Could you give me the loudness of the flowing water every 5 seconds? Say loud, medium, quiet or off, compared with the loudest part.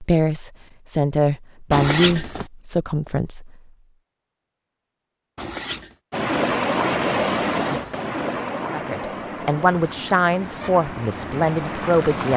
off, loud, medium.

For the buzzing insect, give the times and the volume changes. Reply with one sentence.
You can't hear the buzzing insect here.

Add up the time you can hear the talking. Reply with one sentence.
You can hear the talking for 7 seconds altogether.